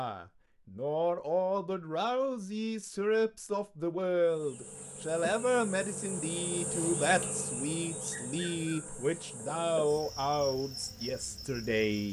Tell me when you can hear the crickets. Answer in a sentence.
The crickets can be heard from 4.2 to 12.0 s.